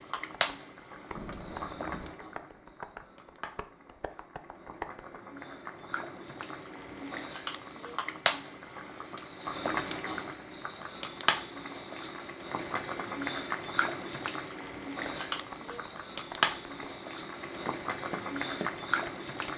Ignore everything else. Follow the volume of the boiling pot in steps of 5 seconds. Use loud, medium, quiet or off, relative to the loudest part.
medium, loud, loud, loud.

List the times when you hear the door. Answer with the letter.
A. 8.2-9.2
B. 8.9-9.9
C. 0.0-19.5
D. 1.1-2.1
D.